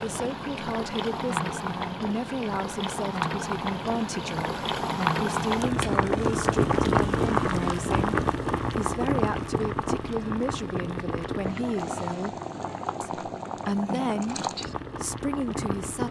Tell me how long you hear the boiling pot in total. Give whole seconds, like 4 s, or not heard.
16 s.